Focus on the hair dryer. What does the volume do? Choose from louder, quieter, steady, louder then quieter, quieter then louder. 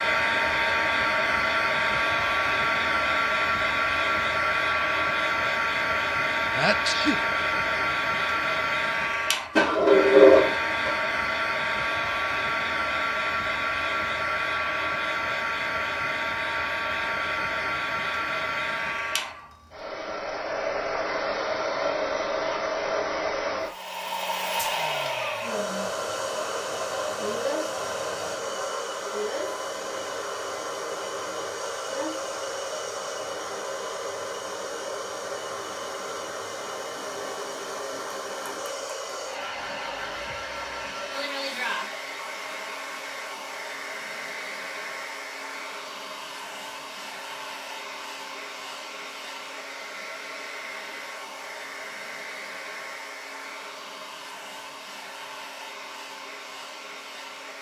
quieter.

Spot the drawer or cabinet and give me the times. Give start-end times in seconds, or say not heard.
9.6-10.9.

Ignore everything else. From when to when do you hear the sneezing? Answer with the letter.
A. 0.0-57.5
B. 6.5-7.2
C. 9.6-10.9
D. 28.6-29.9
B.